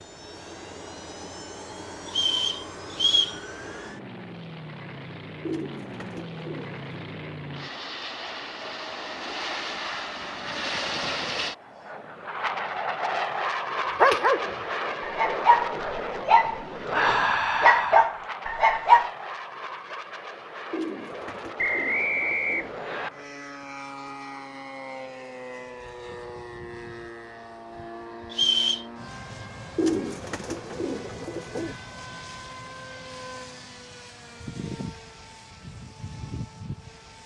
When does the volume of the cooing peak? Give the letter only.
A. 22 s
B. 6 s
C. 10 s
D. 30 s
D.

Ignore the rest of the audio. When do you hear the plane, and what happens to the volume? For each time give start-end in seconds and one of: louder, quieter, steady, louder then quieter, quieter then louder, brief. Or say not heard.
0.0-37.2 louder then quieter.